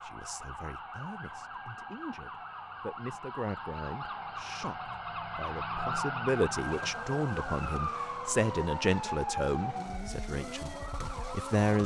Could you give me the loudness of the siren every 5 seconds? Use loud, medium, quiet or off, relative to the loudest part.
medium, loud, medium.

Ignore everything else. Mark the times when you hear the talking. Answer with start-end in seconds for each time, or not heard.
0.0-11.8.